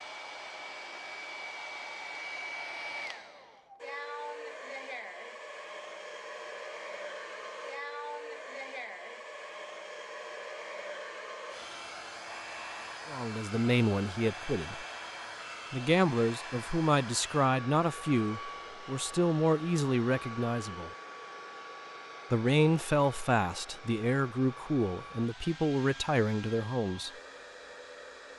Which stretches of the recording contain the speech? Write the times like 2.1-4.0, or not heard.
13.1-14.8, 15.7-20.9, 22.3-27.1.